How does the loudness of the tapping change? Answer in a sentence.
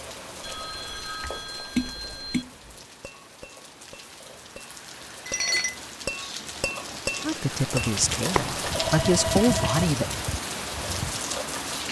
The loudness of the tapping goes down, then up.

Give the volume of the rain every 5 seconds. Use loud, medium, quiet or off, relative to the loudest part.
quiet, loud, loud.